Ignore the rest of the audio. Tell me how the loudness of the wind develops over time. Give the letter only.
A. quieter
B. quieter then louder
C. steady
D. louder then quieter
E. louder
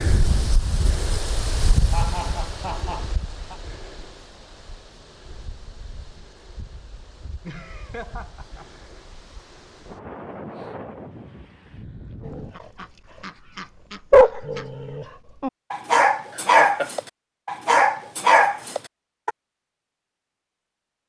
B.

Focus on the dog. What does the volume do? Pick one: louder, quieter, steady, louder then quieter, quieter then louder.
louder.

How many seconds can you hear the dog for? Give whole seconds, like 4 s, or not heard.
7 s.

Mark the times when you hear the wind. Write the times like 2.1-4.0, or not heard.
0.0-12.6.